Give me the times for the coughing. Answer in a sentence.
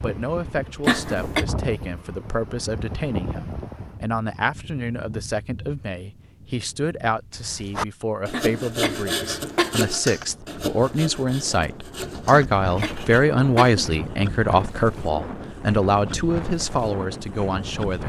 The coughing can be heard from 0.8 to 1.4 s, from 8.3 to 9.9 s and from 12.3 to 13.9 s.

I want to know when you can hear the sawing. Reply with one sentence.
The sawing can be heard from 7.3 to 13.2 s.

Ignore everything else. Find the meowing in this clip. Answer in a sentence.
You can't hear the meowing here.